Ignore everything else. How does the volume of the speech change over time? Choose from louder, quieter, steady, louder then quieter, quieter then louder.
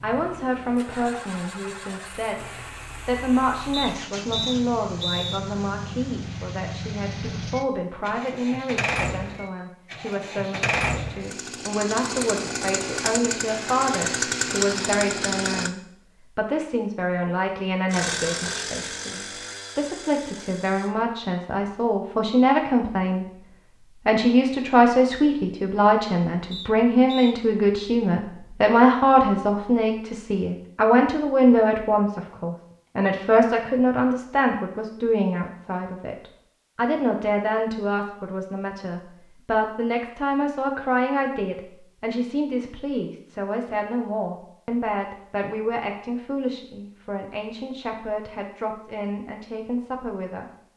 louder then quieter.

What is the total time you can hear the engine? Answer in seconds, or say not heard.
19 s.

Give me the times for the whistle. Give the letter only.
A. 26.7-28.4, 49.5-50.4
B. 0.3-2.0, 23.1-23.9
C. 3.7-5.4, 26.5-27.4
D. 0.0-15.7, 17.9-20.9
C.